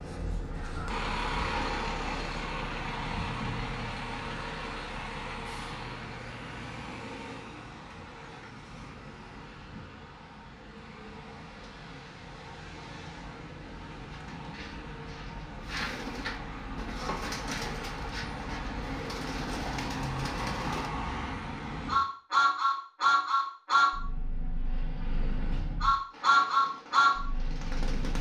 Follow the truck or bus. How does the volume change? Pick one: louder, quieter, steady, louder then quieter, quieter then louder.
quieter then louder.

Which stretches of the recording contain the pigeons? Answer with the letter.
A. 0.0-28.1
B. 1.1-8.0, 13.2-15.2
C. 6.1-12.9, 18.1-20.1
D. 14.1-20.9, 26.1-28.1
D.